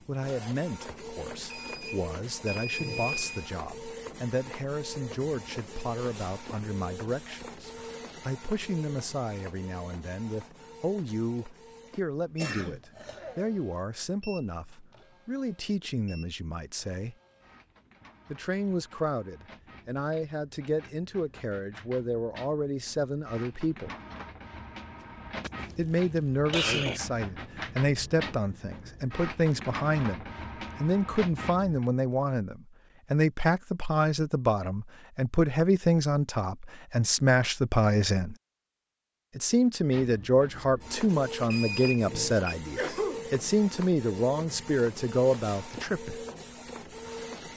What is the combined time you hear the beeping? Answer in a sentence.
You can hear the beeping for 3 seconds altogether.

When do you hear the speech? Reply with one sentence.
You can hear the speech from 0.1 to 17.1 s, from 18.3 to 23.9 s, from 25.8 to 38.4 s and from 39.4 to 46.2 s.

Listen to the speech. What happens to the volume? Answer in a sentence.
The loudness of the speech goes up.